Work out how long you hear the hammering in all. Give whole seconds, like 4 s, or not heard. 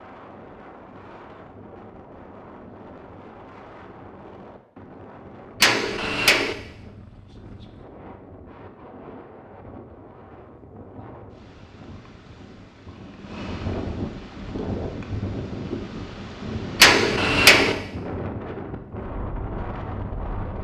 2 s.